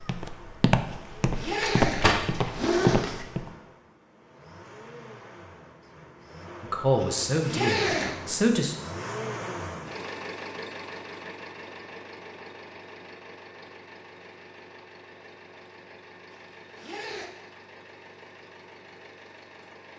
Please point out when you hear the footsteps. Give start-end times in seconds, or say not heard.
0.0-3.5.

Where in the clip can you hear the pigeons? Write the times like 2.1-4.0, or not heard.
not heard.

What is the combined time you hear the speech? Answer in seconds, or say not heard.
2 s.